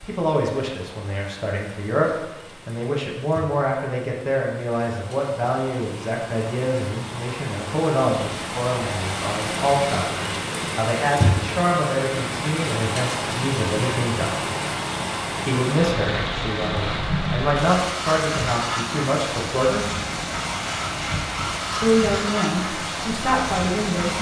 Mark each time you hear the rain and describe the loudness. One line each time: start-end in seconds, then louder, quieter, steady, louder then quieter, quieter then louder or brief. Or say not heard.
0.0-24.1 louder.